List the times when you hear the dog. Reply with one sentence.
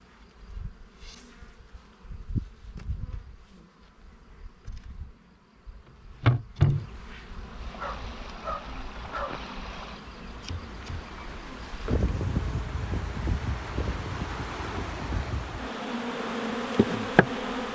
The dog can be heard from 7.8 to 9.4 s.